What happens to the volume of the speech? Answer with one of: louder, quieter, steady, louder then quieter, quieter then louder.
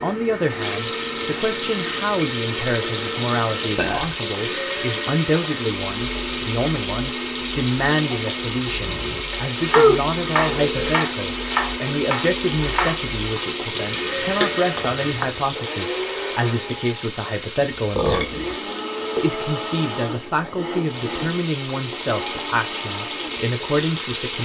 steady.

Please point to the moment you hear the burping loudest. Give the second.
10 s.